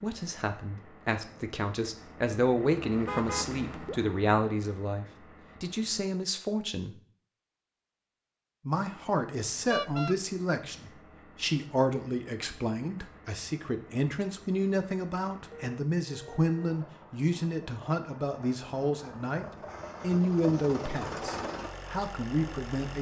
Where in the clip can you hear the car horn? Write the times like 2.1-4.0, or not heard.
3.0-4.0, 9.7-10.2, 15.5-16.8.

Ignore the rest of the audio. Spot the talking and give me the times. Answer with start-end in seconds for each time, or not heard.
0.0-7.0, 8.7-22.9.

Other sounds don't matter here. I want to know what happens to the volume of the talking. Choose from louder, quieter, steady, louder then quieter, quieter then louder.
steady.